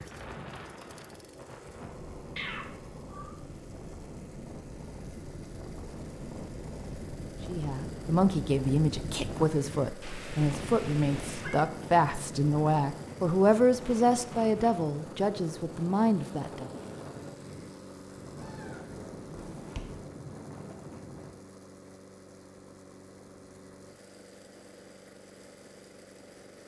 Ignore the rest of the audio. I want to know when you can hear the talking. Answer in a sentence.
The talking can be heard from 7.5 to 16.7 s.